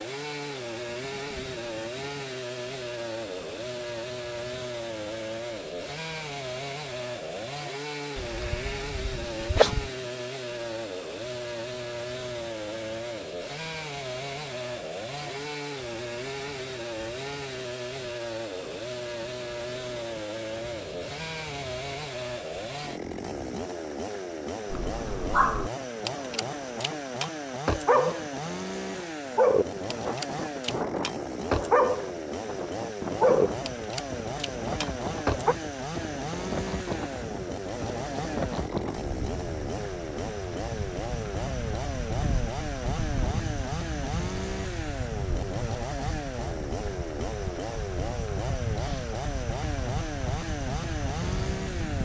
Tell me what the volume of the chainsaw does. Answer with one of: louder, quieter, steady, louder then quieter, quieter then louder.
steady.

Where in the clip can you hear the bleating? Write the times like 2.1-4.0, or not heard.
8.2-9.9.